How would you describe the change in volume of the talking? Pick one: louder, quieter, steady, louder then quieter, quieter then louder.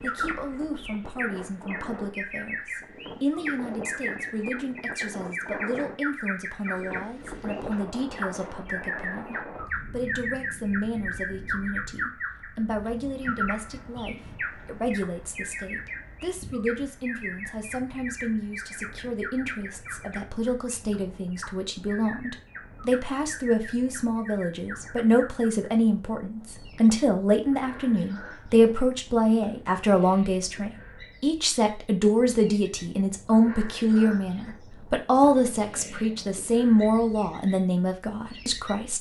louder.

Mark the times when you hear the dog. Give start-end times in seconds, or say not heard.
not heard.